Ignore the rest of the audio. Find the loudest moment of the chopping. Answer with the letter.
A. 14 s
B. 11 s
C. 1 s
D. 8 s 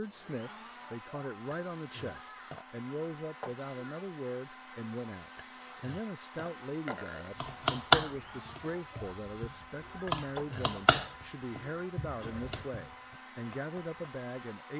D.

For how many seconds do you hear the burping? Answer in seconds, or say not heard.
4 s.